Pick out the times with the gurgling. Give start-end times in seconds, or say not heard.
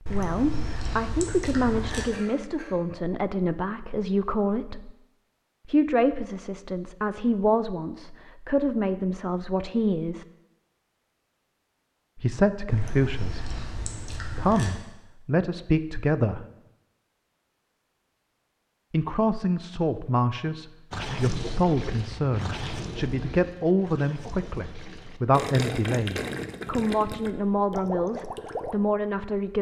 20.9-28.8.